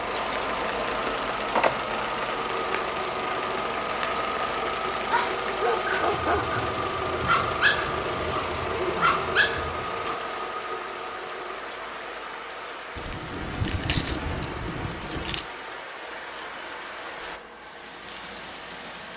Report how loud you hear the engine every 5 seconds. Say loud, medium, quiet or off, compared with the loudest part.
loud, loud, medium, quiet.